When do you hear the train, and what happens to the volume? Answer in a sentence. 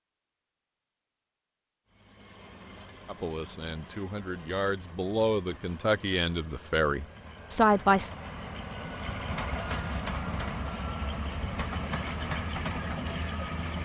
The train can be heard from 1.9 to 13.7 s, getting louder.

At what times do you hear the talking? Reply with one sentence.
The talking can be heard from 3.0 to 8.2 s.